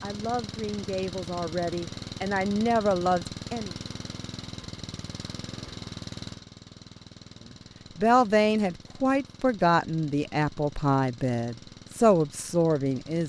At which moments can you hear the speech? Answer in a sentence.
The speech can be heard from 0.0 to 3.7 s and from 8.0 to 13.2 s.